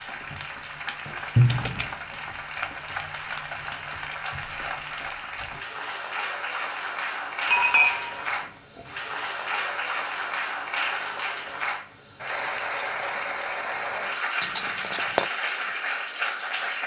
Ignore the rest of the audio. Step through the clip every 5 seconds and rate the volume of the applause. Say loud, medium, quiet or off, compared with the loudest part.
medium, loud, loud, loud.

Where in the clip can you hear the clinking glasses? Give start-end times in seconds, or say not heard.
1.4-1.9, 7.5-8.8, 14.4-15.3.